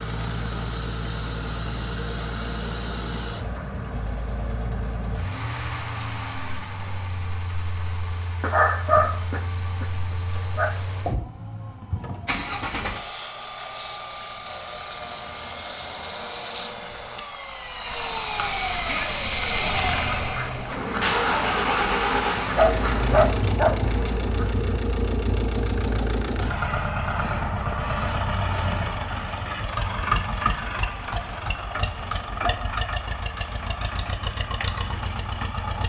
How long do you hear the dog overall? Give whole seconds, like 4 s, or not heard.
4 s.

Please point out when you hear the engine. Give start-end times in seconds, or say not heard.
0.0-35.8.